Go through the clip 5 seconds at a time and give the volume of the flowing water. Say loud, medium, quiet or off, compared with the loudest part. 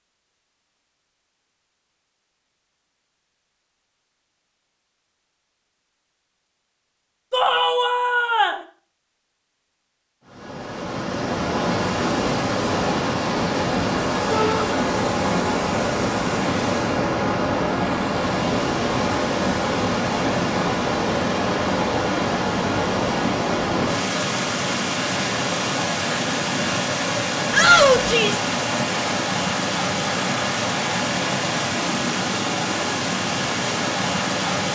off, off, loud, loud, loud, loud, loud.